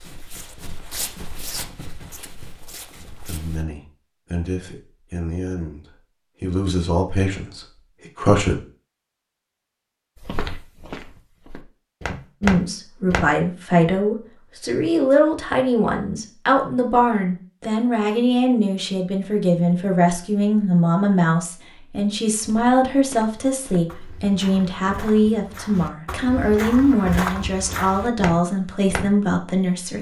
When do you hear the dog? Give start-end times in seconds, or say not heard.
not heard.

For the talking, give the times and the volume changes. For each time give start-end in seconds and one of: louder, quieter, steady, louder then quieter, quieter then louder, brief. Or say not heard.
3.2-8.6 louder then quieter
12.4-29.9 steady.